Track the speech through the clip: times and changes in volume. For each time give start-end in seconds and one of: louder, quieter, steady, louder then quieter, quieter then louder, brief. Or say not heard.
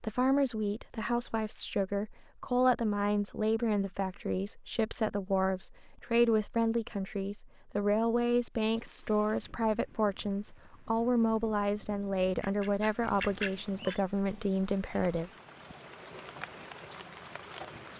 0.0-15.3 steady.